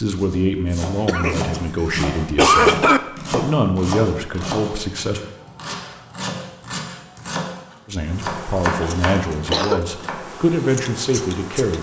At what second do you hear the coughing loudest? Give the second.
3 s.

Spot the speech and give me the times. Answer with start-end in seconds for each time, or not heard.
0.0-5.2, 7.8-11.7.